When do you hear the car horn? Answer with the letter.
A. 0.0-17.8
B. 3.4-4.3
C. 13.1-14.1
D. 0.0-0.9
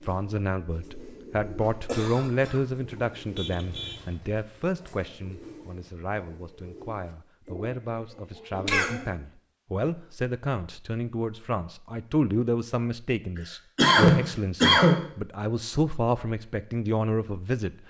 B.